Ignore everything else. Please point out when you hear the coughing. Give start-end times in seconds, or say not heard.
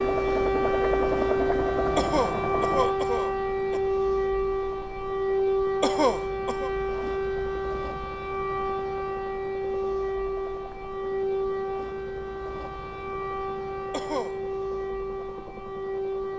1.9-3.8, 5.8-6.7, 13.9-14.3.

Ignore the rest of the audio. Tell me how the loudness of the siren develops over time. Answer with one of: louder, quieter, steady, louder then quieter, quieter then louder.
quieter.